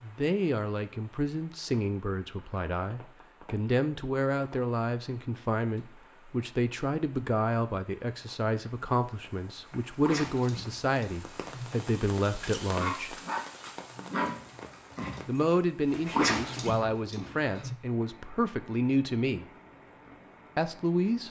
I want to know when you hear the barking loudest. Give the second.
16 s.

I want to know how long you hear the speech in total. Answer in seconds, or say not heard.
18 s.